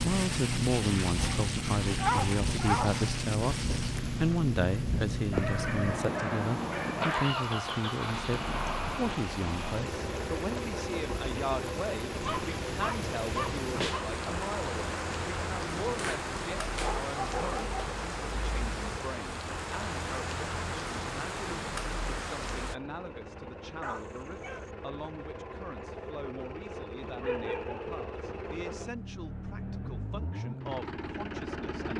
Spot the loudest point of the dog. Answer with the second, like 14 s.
2 s.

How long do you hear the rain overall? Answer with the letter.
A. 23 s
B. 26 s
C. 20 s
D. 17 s
A.